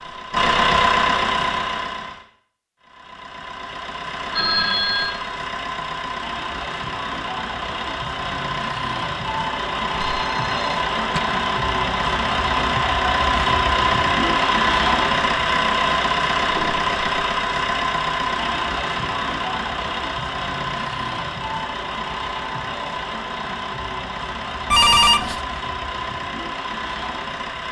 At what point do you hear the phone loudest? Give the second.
25 s.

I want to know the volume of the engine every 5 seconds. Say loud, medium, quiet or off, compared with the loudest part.
loud, medium, loud, loud, medium, medium.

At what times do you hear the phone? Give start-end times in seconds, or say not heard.
4.3-5.2, 10.0-11.2, 24.7-25.4.